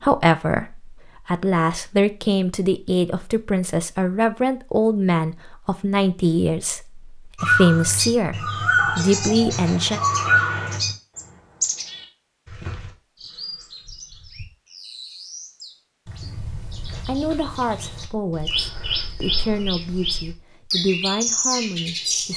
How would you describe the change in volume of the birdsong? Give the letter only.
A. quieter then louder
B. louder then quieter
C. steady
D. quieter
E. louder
A.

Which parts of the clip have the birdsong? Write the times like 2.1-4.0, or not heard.
7.3-22.3.